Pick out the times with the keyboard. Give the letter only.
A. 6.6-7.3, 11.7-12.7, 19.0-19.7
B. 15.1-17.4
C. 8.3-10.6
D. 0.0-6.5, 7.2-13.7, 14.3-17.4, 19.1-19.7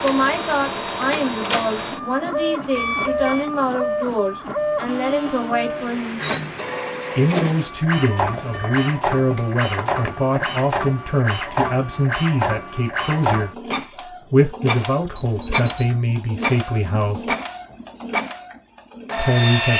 C.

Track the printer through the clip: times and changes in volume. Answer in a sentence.
You can hear the printer from 0.0 to 19.7 s, at a steady volume.